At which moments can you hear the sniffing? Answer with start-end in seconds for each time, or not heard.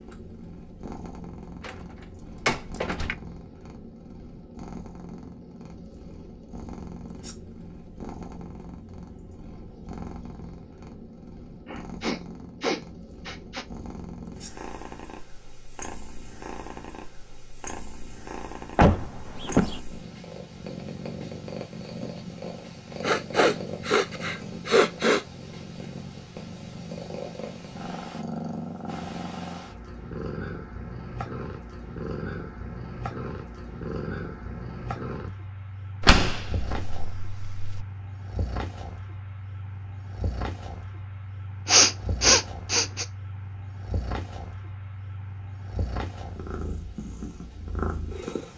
11.7-13.7, 23.0-25.2, 41.6-43.0.